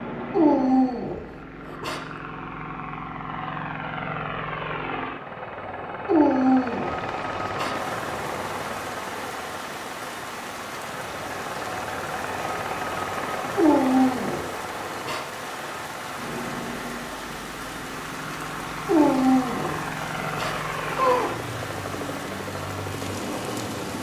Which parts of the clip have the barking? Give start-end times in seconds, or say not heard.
0.3-2.0, 6.0-7.8, 13.6-15.2, 18.9-21.3.